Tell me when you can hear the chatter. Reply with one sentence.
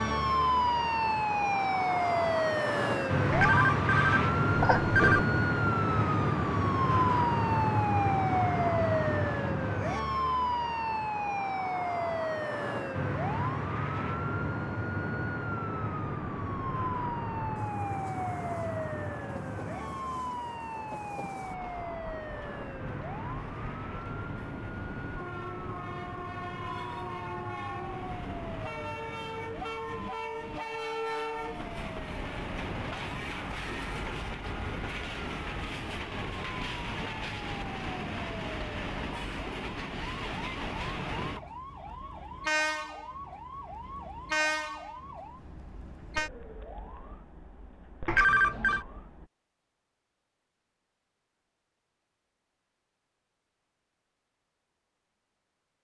The chatter can't be heard in this clip.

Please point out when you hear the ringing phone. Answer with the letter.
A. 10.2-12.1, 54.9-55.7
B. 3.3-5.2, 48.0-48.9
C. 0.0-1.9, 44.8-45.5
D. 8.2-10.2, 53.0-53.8
B.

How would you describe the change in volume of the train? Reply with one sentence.
The volume of the train goes up.